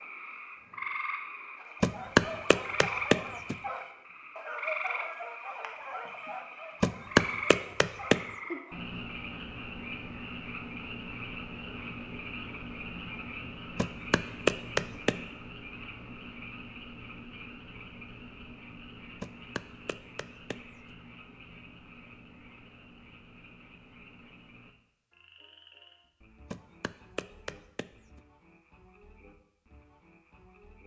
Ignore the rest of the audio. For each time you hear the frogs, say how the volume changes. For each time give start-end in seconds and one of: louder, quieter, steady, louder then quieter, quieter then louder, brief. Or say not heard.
0.0-30.8 quieter.